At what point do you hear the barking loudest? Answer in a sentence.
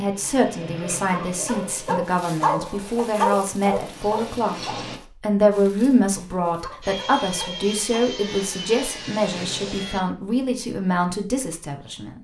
The volume of the barking peaks at 3 seconds.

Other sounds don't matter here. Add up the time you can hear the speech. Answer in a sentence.
You can hear the speech for 12 seconds altogether.